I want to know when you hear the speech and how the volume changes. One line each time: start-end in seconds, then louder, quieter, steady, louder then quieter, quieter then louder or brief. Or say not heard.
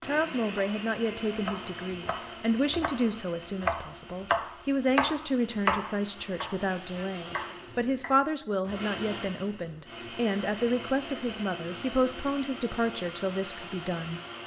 0.0-14.2 steady.